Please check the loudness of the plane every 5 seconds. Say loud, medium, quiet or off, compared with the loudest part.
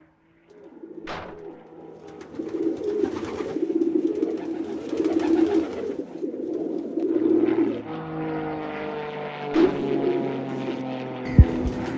quiet, loud, loud.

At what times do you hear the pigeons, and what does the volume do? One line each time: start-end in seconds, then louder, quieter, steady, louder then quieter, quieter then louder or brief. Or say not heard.
0.5-7.8 louder
9.6-11.9 brief.